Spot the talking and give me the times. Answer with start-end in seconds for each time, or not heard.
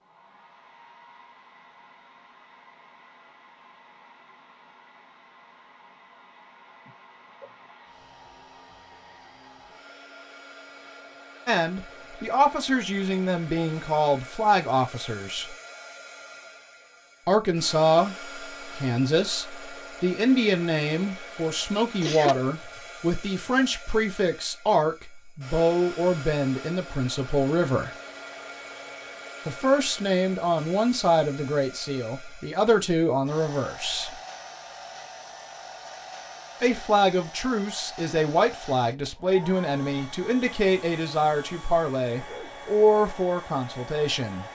11.4-15.6, 17.2-18.1, 18.8-27.9, 29.4-34.1, 36.6-44.5.